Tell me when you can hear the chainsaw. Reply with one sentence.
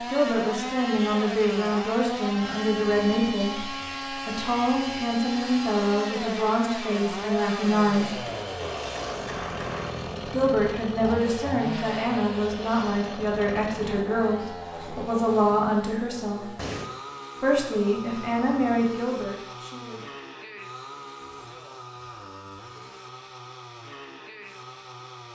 The chainsaw can be heard from 0.0 to 25.3 s.